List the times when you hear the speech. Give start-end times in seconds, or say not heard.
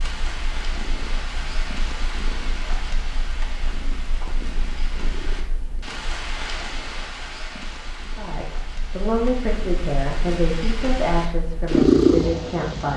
8.2-12.9.